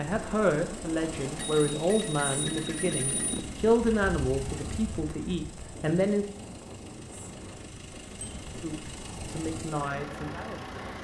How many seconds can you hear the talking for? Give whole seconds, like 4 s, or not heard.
8 s.